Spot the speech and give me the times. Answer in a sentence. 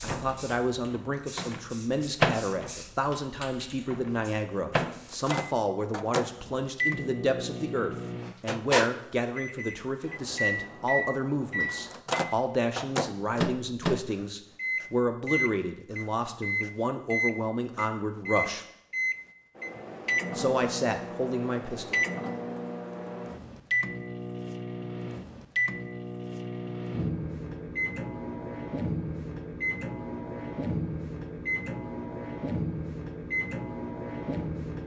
The speech can be heard from 0.0 to 18.6 s and from 20.4 to 22.0 s.